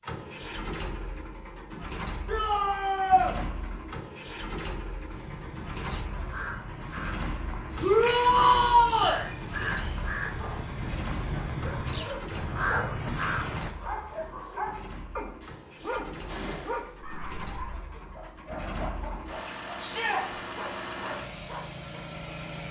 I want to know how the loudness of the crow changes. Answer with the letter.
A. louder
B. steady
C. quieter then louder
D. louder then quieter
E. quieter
A.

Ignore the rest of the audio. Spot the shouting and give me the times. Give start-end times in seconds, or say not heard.
2.2-3.4, 7.8-9.2, 19.8-20.2.